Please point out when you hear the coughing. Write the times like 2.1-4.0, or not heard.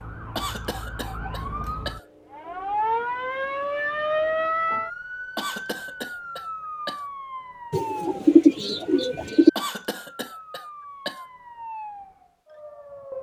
0.3-2.0, 5.3-7.0, 9.6-11.2.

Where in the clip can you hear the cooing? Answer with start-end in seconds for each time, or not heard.
7.7-9.5.